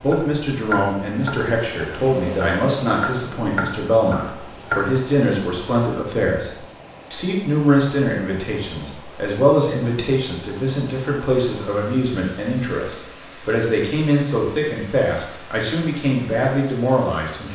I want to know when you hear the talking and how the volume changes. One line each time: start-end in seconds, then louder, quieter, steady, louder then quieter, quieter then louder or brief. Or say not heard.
0.0-17.5 steady.